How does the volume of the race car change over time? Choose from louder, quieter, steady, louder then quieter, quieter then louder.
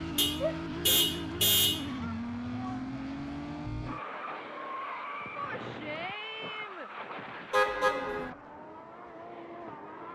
quieter.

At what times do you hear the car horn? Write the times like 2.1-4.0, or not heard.
0.1-1.9, 7.5-8.3.